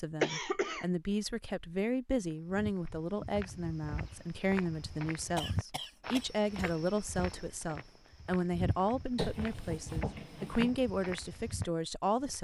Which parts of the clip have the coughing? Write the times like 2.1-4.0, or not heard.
0.2-0.8, 5.3-6.7, 9.2-10.8.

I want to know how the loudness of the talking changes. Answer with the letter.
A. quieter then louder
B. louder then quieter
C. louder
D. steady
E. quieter
D.